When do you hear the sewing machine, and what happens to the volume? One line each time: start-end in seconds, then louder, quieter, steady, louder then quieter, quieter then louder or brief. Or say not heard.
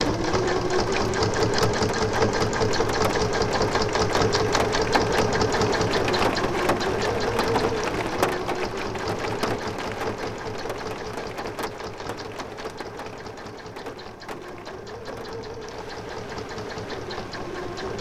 0.0-17.9 quieter.